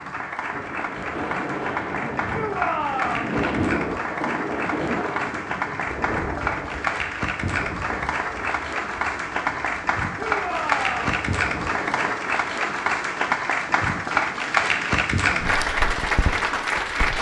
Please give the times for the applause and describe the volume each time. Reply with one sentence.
You can hear the applause from 0.0 to 17.1 s, getting louder.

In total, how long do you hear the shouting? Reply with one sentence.
You can hear the shouting for 2 seconds altogether.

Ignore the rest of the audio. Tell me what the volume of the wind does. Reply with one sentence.
The volume of the wind goes down.